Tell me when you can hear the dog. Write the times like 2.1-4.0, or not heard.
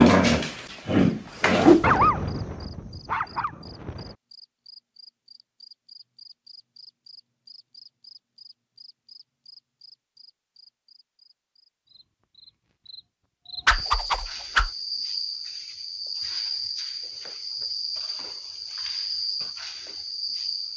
0.0-4.2.